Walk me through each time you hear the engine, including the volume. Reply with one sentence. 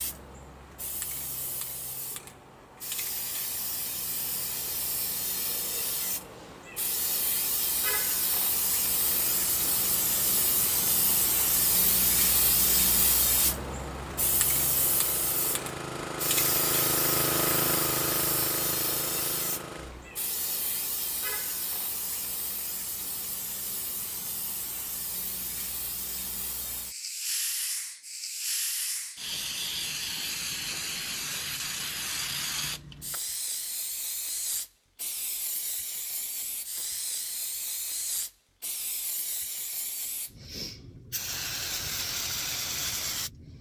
The engine can be heard from 8.9 to 20.1 s, getting louder.